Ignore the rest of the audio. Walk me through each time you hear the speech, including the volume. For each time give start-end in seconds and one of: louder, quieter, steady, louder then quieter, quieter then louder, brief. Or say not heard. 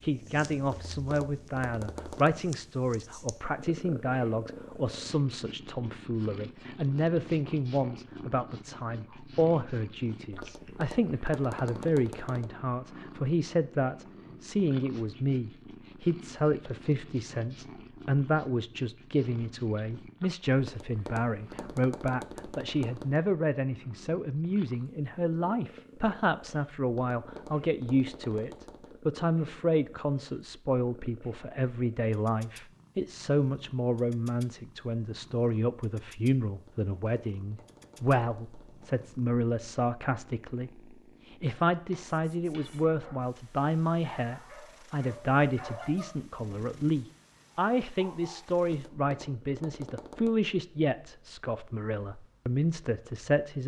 0.0-53.6 steady.